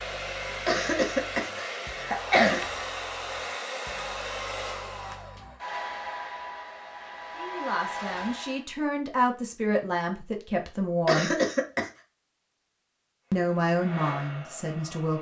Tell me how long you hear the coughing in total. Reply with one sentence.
The coughing can be heard for 3 seconds in total.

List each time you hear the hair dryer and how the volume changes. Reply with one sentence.
The hair dryer can be heard from 0.0 to 8.7 s, at a steady volume; and briefly from 13.3 to 15.1 s.